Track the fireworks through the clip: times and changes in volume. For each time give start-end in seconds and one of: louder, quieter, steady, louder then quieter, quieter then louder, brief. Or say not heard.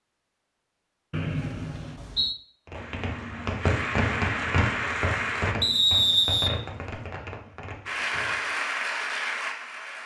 2.6-8.6 quieter.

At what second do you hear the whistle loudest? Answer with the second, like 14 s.
6 s.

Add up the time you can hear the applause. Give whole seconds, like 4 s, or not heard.
5 s.